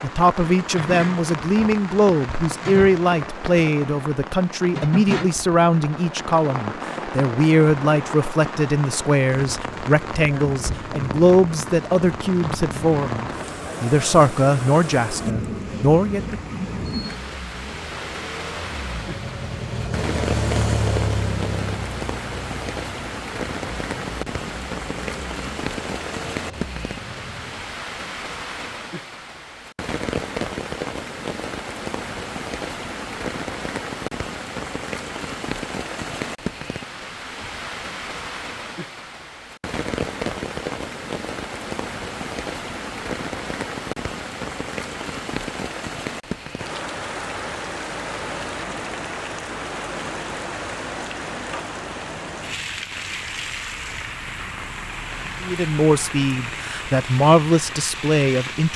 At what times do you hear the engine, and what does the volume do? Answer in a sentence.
The engine can be heard from 15.5 to 27.7 s, getting louder then quieter.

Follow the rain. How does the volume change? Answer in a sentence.
The loudness of the rain stays about the same.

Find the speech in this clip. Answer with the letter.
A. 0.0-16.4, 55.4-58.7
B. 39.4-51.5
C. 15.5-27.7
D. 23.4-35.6
A.